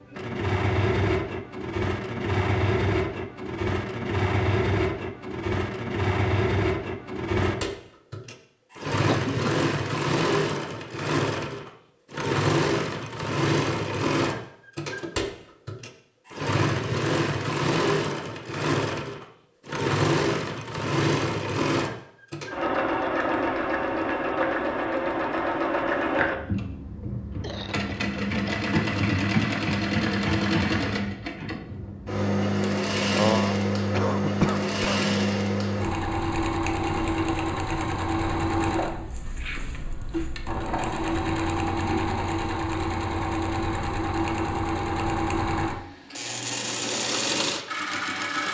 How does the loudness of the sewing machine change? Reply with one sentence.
The loudness of the sewing machine stays about the same.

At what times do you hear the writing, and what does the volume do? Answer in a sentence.
You can't hear the writing here.